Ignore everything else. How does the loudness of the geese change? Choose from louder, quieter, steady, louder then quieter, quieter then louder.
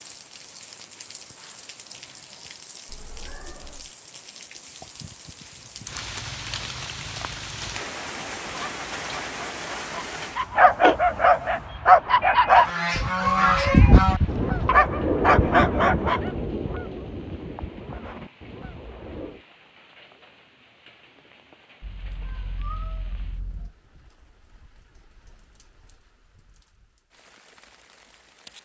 quieter.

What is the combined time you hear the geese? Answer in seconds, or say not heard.
7 s.